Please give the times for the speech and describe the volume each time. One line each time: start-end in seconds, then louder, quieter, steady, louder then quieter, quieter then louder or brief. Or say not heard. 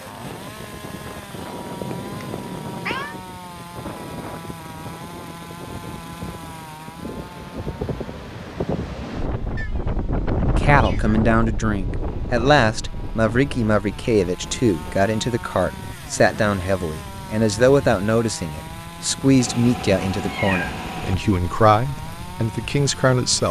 10.6-23.4 steady.